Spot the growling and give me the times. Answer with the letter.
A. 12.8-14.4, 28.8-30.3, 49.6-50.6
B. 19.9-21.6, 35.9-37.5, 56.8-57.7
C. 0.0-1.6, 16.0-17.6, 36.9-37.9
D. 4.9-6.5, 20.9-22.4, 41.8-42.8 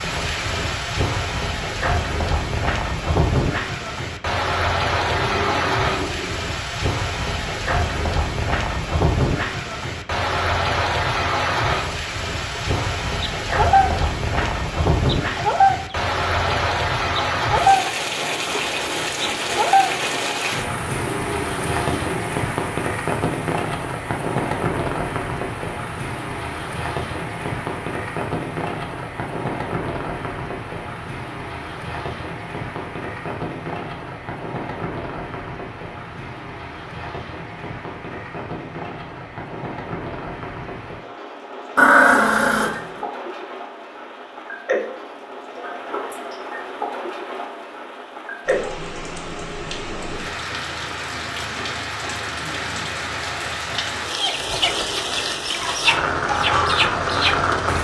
D.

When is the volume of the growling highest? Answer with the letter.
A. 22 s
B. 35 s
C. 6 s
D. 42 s
D.